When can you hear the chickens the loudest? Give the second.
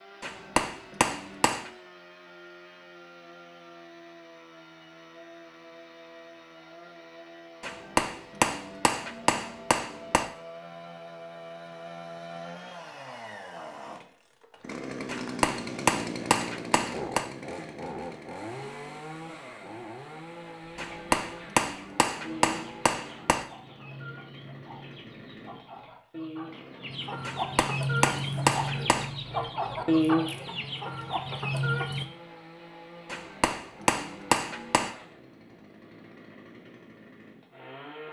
30 s.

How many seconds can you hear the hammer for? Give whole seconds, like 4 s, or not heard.
13 s.